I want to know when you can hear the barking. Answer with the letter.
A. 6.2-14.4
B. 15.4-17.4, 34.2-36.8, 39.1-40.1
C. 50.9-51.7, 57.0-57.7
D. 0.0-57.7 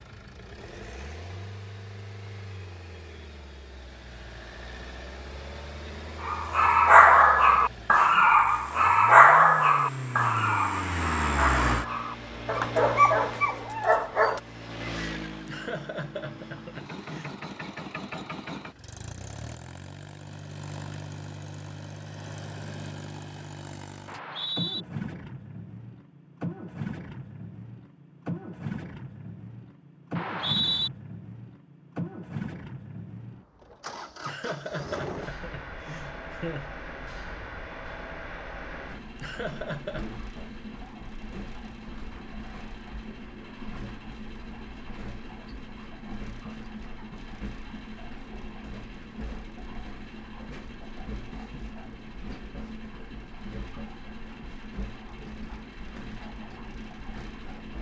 A.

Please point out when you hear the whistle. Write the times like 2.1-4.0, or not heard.
24.1-24.9, 30.1-30.9.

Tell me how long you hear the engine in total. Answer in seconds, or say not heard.
58 s.